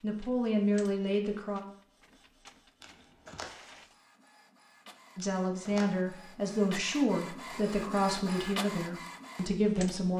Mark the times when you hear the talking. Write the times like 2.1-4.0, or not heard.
0.0-1.6, 5.2-10.1.